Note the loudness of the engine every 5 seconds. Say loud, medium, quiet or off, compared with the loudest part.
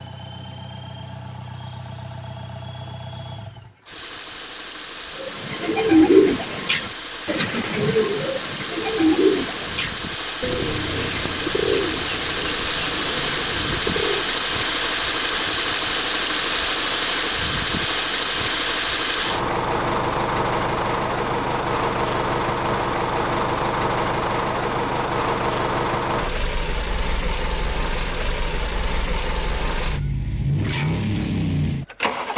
quiet, medium, loud, loud, loud, loud, loud.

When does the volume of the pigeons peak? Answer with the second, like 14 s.
6 s.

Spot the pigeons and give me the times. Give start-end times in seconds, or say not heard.
5.2-14.4.